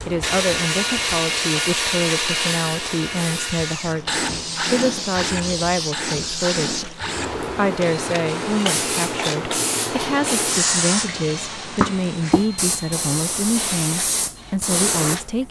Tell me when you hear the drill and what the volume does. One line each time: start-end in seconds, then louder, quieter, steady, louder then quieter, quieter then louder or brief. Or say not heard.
0.0-15.4 quieter.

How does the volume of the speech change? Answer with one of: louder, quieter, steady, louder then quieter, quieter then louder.
steady.